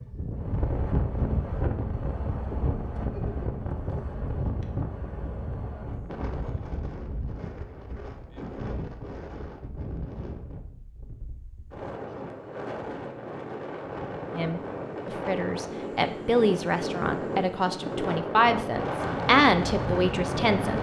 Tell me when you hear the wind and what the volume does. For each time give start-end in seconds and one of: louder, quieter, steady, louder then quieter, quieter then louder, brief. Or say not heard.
0.0-20.7 quieter then louder.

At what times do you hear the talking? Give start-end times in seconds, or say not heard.
14.3-20.7.